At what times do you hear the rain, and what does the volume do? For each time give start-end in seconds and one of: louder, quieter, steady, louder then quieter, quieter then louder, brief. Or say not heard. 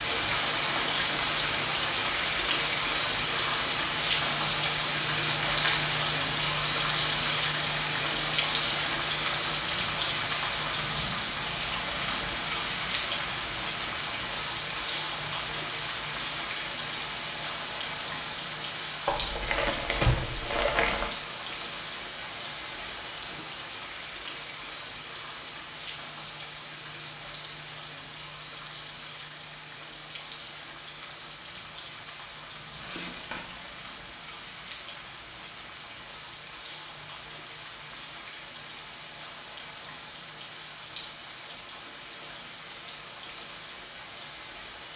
0.0-44.9 quieter.